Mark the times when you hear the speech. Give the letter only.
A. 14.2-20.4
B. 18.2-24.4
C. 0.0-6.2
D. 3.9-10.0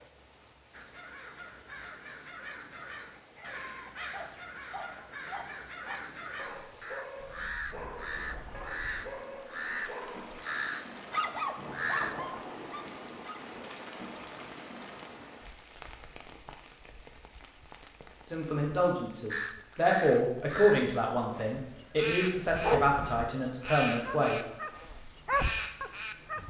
B.